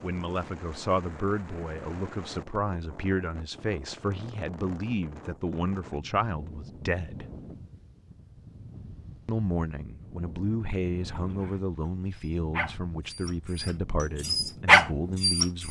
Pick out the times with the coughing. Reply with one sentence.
The coughing can't be heard in this clip.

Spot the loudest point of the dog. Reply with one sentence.
The volume of the dog peaks at 15 seconds.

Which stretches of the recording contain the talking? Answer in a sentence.
You can hear the talking from 0.0 to 7.2 s and from 9.2 to 15.6 s.